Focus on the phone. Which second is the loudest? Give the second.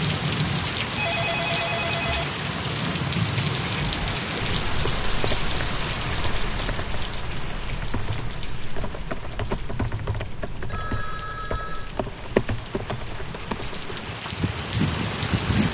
1 s.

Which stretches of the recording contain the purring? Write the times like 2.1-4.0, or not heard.
not heard.